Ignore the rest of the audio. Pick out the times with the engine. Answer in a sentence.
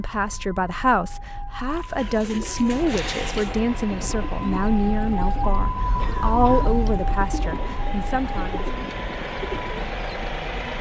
You can hear the engine from 2.5 to 10.7 s.